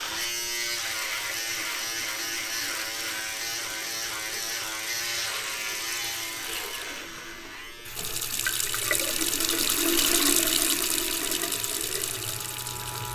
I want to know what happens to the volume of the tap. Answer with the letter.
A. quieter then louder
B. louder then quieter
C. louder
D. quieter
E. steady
C.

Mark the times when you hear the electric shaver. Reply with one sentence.
The electric shaver can be heard from 0.0 to 13.1 s.